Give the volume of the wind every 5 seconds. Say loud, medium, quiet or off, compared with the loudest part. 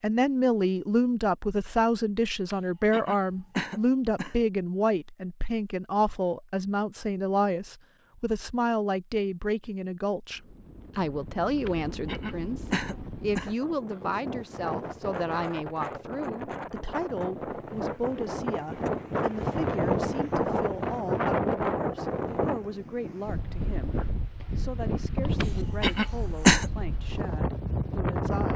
off, off, medium, loud, loud, loud.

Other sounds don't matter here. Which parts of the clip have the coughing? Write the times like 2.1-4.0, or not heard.
2.5-4.3, 11.7-13.6, 25.4-26.6.